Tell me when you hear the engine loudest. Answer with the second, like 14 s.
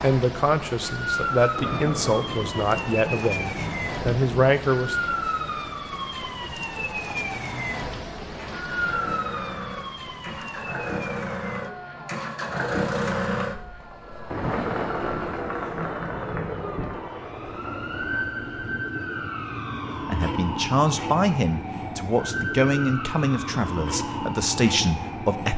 13 s.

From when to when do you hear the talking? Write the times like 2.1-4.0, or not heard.
0.0-5.0, 20.1-25.5.